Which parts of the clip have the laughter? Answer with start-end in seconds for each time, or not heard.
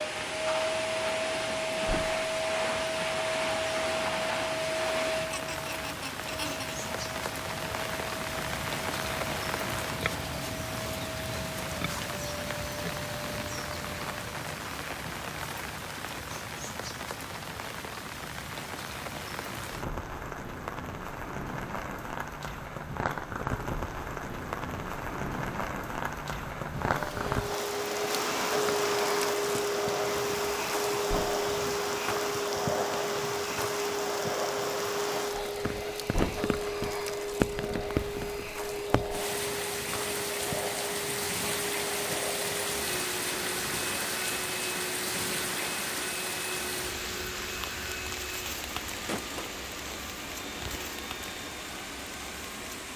5.3-6.8.